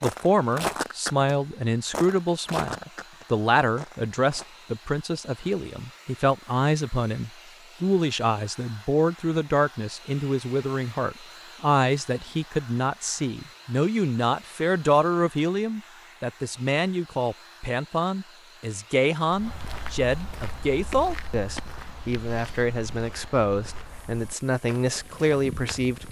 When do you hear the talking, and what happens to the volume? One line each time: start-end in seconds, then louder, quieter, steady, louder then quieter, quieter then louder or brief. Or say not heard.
0.0-26.0 steady.